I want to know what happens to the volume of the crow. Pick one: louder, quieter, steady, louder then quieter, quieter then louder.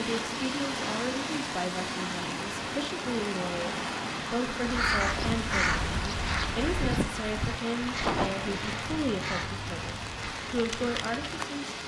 quieter.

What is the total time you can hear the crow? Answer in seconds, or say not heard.
7 s.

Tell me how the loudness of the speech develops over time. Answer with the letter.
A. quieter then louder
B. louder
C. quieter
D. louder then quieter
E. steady
E.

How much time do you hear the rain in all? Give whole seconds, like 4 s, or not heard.
12 s.